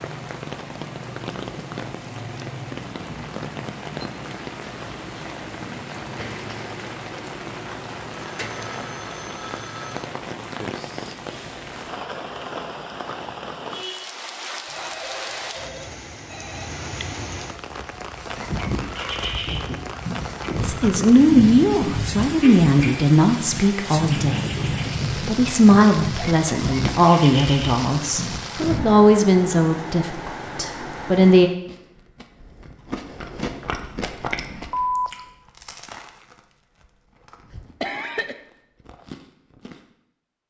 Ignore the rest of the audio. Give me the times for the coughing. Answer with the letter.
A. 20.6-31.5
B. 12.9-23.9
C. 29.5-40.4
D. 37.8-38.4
D.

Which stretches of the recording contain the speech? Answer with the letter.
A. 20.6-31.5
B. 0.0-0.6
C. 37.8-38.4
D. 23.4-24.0
A.